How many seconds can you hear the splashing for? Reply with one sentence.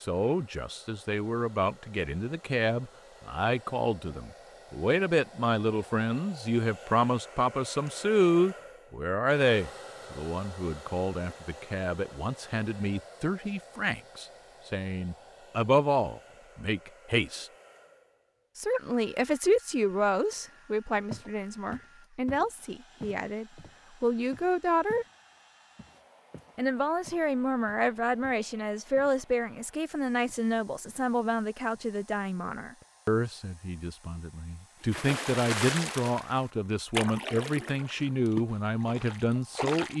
The splashing can be heard for 5 seconds in total.